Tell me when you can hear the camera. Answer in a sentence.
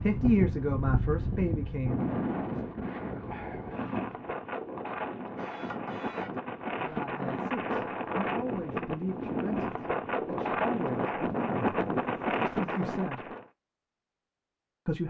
You can hear the camera from 5.3 to 6.4 s.